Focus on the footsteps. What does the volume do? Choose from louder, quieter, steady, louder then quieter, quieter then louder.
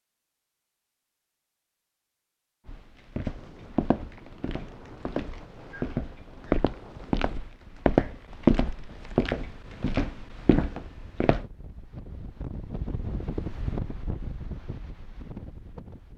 louder then quieter.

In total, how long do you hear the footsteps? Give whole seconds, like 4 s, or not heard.
9 s.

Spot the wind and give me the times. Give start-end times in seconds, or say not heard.
3.3-16.1.